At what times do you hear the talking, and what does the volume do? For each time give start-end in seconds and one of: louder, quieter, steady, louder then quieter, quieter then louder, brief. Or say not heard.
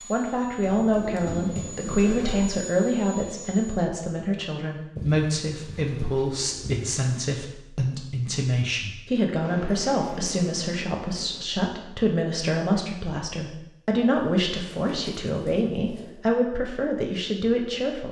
0.1-18.0 steady.